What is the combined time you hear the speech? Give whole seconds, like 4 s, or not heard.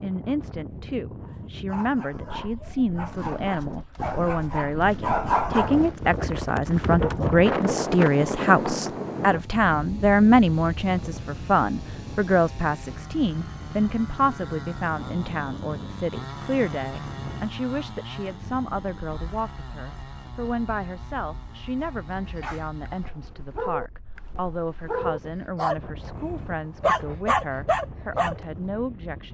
29 s.